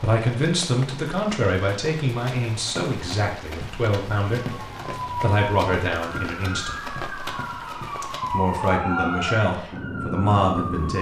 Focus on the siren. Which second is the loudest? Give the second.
9 s.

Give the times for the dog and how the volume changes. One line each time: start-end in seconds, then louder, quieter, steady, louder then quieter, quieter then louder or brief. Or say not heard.
not heard.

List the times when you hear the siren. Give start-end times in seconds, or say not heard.
4.4-10.9.